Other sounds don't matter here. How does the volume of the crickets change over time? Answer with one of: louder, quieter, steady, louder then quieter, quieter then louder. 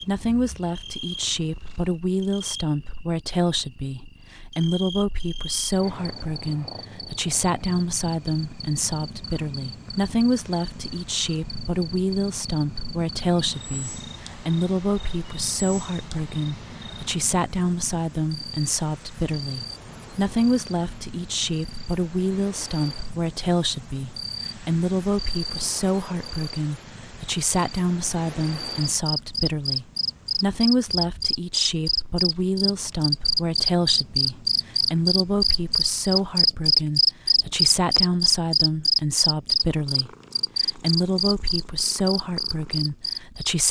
louder.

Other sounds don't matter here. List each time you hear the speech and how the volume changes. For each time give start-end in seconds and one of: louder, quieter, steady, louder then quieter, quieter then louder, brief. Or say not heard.
0.0-43.6 steady.